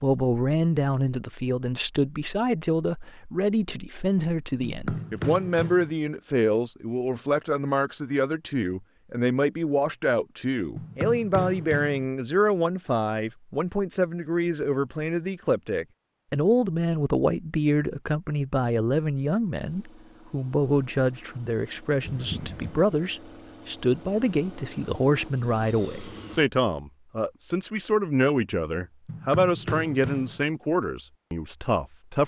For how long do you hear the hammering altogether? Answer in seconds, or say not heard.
4 s.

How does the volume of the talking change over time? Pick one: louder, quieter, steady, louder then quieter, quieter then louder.
steady.